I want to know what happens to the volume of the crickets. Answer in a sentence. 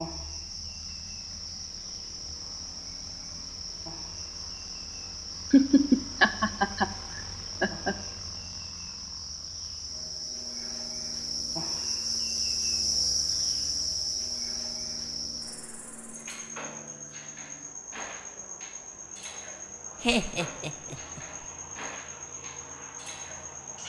The volume of the crickets goes up, then down.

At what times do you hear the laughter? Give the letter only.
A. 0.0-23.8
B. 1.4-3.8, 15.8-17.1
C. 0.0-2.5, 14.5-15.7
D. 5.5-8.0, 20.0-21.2
D.